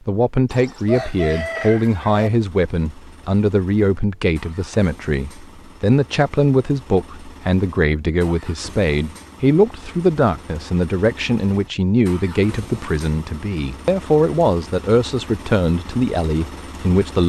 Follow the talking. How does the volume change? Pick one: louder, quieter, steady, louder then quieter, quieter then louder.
steady.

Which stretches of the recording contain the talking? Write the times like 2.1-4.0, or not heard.
0.1-17.2.